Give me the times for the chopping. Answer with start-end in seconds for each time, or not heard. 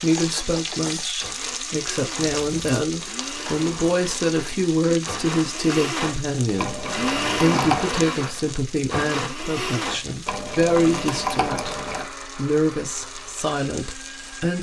not heard.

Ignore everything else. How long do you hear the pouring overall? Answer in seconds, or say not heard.
4 s.